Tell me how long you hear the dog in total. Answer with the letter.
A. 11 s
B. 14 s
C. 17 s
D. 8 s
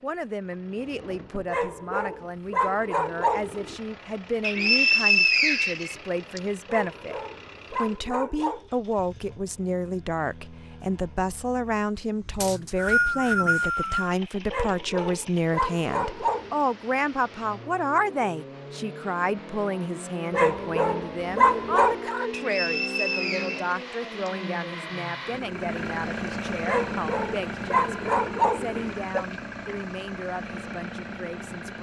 A.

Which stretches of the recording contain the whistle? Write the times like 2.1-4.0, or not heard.
4.4-6.4, 12.4-14.2, 22.3-24.3.